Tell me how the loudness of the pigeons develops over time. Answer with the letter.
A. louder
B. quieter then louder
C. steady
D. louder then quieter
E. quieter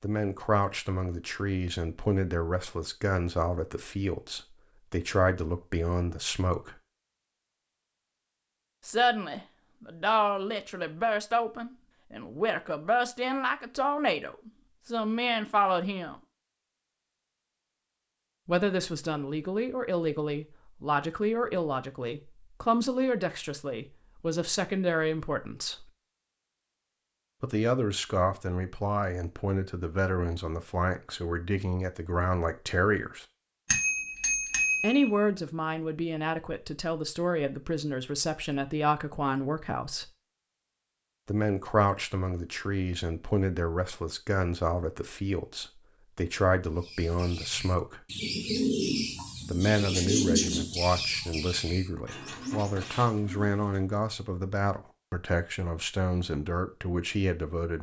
D.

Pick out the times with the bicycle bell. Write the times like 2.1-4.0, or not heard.
33.6-35.1.